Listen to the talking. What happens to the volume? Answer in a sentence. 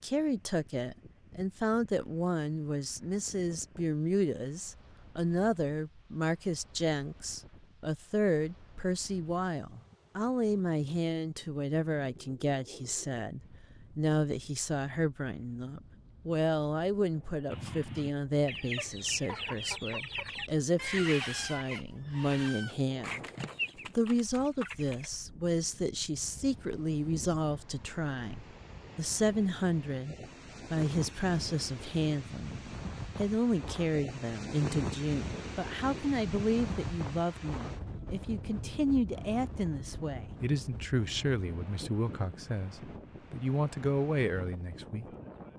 The volume of the talking stays about the same.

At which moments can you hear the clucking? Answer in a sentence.
You can hear the clucking from 17.5 to 25.1 s.